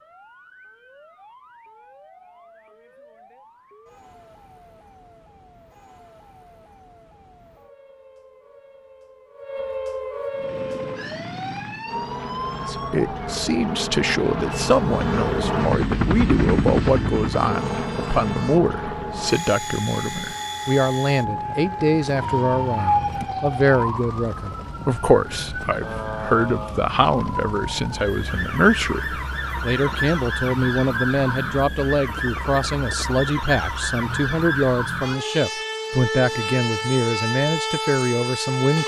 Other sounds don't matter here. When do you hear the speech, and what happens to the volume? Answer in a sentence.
The speech can be heard from 12.7 to 38.8 s, at a steady volume.